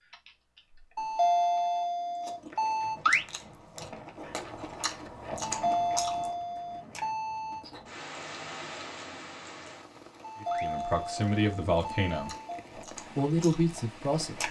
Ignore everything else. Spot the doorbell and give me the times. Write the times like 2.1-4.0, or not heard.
0.9-3.0, 5.4-7.7, 10.2-12.7.